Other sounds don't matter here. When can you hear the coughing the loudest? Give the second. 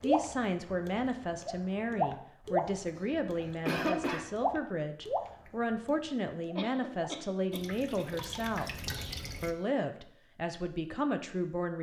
4 s.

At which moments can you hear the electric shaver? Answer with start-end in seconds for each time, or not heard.
not heard.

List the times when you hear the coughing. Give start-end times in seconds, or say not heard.
3.0-4.2, 6.5-8.4.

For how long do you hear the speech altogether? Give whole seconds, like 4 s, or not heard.
12 s.